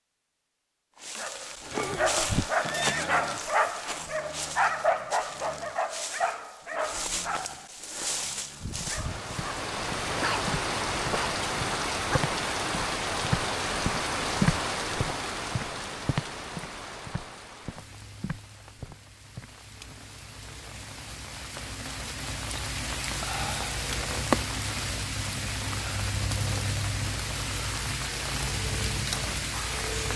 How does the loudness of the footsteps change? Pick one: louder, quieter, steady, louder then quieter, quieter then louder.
louder then quieter.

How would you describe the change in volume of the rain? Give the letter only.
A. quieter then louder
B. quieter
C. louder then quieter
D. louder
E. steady
A.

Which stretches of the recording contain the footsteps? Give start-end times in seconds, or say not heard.
8.8-19.9.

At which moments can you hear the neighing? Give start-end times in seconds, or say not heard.
1.7-3.1.